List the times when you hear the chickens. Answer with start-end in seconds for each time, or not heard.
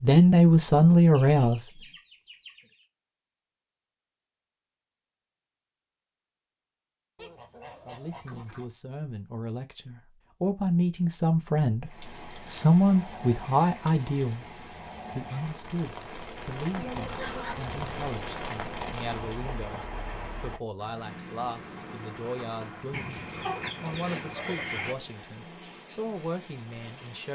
1.1-2.9, 7.2-8.7, 16.7-18.2, 22.9-24.9.